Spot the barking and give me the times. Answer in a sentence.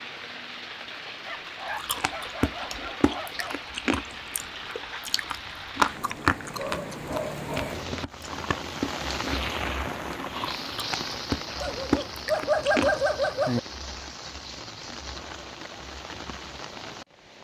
You can hear the barking from 1.2 to 3.6 s, from 6.5 to 7.8 s and from 11.6 to 13.6 s.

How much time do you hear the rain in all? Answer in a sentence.
You can hear the rain for 17 seconds altogether.